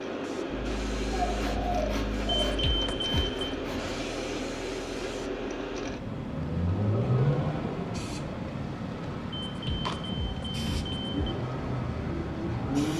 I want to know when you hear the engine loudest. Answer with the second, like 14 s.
7 s.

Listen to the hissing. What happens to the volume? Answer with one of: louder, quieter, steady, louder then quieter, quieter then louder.
steady.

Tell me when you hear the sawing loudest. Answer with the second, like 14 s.
2 s.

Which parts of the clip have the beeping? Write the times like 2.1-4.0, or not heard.
2.4-3.5, 9.4-11.3.